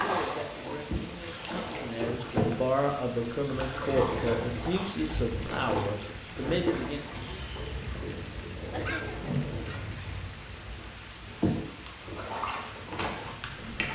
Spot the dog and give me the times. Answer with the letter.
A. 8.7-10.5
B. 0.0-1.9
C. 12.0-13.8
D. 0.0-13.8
A.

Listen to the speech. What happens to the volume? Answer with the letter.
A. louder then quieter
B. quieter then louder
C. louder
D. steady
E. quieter
C.